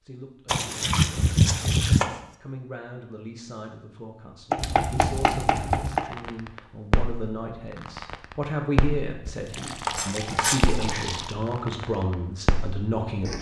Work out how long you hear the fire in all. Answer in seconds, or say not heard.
9 s.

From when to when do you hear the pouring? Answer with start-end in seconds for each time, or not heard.
0.5-2.0, 9.2-11.3.